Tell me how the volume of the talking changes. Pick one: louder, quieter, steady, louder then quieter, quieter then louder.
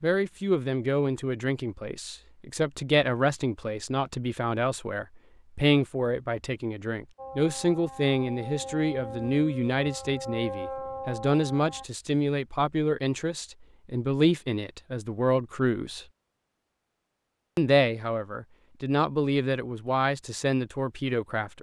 steady.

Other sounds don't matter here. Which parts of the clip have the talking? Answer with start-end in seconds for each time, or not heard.
0.0-16.1, 17.6-21.5.